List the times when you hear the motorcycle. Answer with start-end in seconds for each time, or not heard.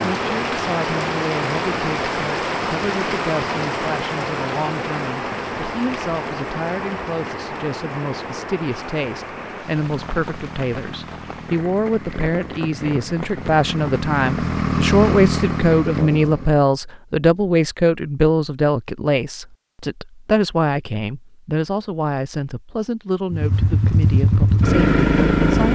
9.8-16.6, 23.3-25.6.